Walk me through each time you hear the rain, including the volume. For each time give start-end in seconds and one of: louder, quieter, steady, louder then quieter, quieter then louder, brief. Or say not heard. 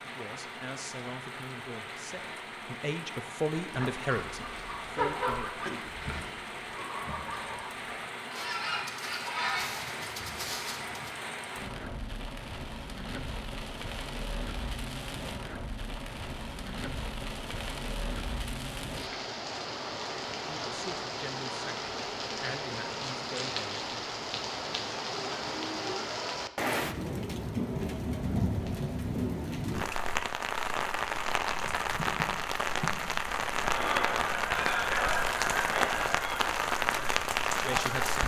0.0-38.2 louder.